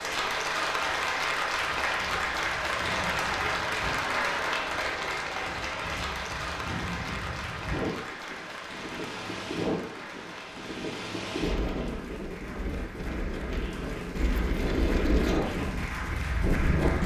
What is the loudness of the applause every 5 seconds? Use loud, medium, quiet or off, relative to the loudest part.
loud, medium, quiet, medium.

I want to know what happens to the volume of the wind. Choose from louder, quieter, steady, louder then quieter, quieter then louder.
louder.